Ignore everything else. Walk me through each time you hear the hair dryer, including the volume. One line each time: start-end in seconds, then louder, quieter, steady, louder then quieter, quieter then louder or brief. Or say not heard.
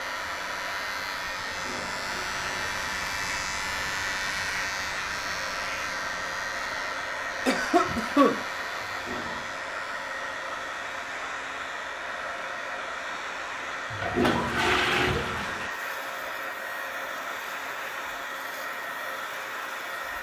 0.0-20.1 steady.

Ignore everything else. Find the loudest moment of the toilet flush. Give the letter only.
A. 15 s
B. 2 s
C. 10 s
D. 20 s
A.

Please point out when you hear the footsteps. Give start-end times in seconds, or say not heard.
not heard.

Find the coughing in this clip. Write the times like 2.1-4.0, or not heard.
7.5-8.4.